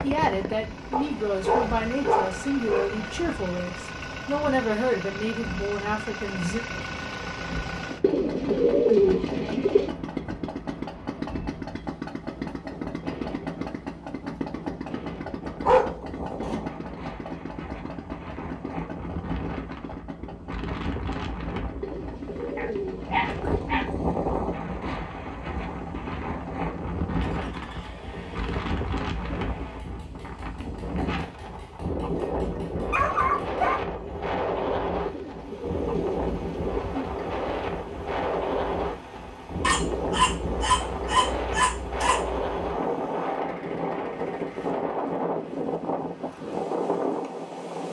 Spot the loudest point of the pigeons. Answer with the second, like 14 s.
9 s.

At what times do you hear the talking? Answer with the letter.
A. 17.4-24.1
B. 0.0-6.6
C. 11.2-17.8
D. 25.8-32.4
B.